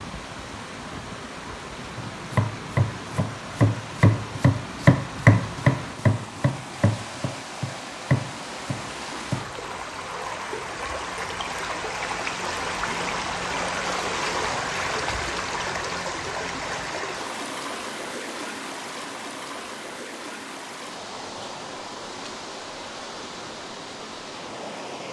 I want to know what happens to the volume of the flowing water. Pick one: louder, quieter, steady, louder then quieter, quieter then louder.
louder then quieter.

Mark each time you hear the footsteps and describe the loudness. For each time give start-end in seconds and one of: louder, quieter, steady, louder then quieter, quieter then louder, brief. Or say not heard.
not heard.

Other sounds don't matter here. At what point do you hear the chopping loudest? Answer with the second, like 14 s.
5 s.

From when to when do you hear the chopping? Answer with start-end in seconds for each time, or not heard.
1.9-9.5.